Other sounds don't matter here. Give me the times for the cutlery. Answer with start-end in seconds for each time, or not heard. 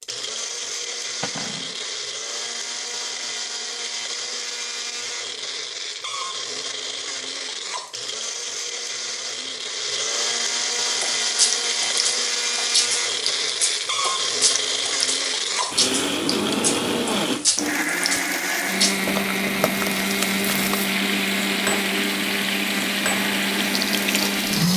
1.2-1.8.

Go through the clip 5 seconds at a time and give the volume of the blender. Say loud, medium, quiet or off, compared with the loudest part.
medium, medium, loud, loud, loud.